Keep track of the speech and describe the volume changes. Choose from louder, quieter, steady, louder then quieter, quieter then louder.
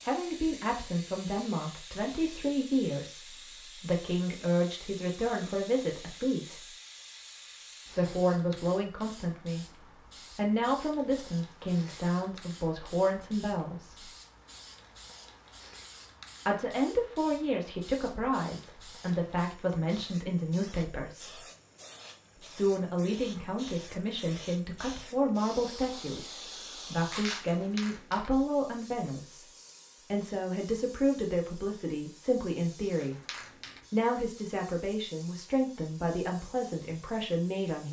steady.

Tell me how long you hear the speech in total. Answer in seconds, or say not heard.
32 s.